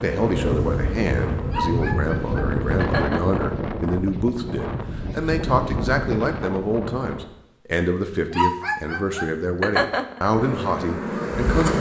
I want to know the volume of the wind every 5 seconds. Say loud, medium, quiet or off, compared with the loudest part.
loud, loud, off.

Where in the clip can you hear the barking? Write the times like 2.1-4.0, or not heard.
1.5-3.4, 8.3-10.2.